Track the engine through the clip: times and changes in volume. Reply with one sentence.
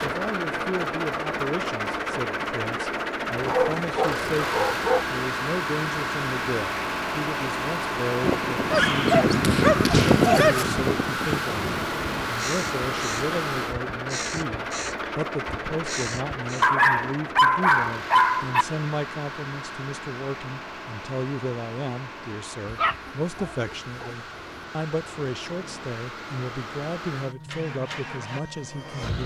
The engine can be heard from 0.0 to 29.2 s, getting quieter.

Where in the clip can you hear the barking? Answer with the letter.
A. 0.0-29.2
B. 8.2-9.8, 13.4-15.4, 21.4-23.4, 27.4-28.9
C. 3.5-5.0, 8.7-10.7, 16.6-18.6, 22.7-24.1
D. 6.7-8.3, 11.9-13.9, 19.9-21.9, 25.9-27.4
C.